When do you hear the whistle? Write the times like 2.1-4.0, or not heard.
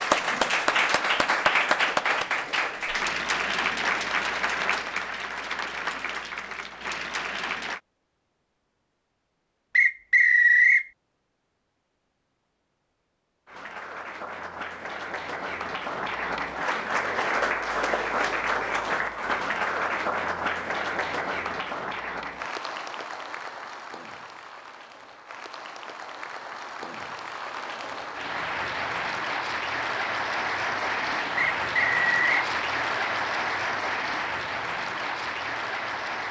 9.8-10.8, 31.4-32.4.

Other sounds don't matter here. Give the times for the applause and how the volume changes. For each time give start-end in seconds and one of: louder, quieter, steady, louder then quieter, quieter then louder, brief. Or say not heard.
0.0-7.8 quieter
13.4-36.2 quieter then louder.